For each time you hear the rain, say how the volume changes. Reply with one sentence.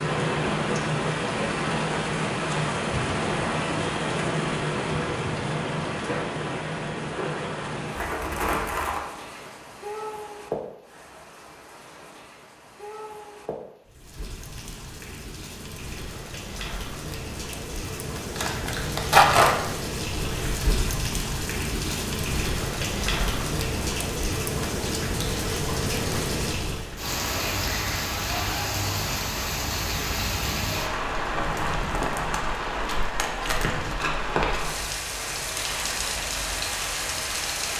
The rain can be heard from 0.0 to 37.7 s, getting quieter then louder.